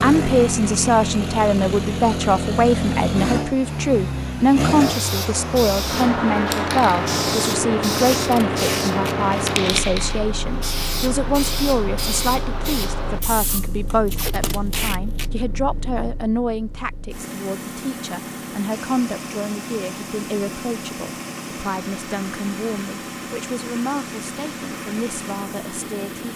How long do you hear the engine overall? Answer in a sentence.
The engine can be heard for 26 seconds in total.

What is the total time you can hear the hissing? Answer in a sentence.
You can hear the hissing for 10 seconds altogether.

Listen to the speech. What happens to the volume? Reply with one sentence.
The loudness of the speech goes down.